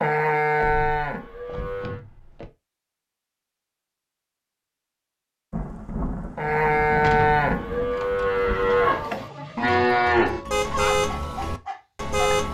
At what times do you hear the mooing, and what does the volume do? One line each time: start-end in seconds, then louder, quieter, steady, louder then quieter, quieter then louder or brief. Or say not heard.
0.0-2.0 brief
6.3-12.4 quieter.